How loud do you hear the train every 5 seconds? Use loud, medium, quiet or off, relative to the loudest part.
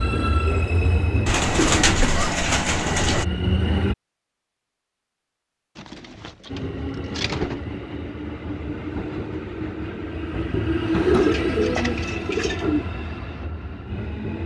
loud, medium, loud.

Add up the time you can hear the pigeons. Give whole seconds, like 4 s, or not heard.
6 s.